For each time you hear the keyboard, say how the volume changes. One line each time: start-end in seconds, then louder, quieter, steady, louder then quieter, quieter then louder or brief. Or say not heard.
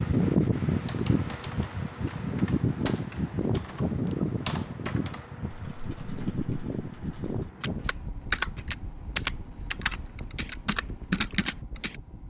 0.8-11.9 quieter then louder.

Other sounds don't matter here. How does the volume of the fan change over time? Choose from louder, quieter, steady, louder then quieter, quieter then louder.
quieter.